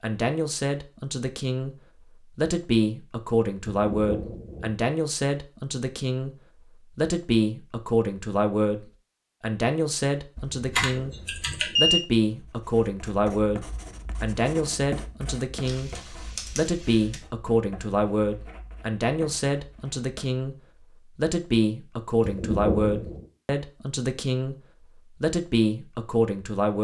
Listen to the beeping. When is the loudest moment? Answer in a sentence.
The volume of the beeping peaks at 12 seconds.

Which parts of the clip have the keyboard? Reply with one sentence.
The keyboard can be heard from 10.3 to 11.7 s and from 15.7 to 17.2 s.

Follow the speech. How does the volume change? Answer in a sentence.
The loudness of the speech stays about the same.